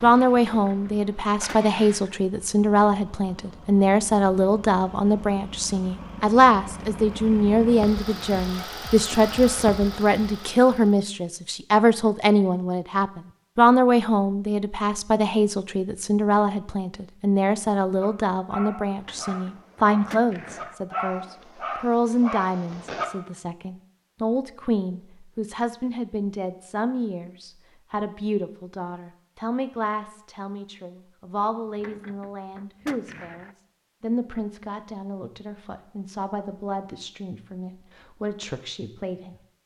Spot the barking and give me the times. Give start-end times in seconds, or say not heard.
18.0-23.1.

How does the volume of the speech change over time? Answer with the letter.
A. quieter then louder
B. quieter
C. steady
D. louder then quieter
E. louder
B.